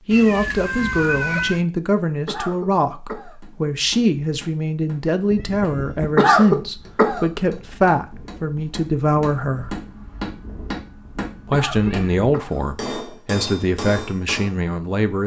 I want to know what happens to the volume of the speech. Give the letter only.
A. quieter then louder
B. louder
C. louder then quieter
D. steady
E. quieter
D.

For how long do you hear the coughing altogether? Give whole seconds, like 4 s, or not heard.
3 s.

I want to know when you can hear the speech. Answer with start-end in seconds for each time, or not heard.
0.1-9.8, 11.4-15.2.